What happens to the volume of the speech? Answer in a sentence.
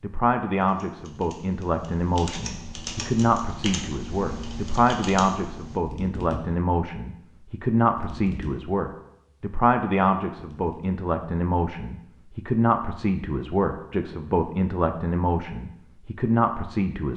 The loudness of the speech stays about the same.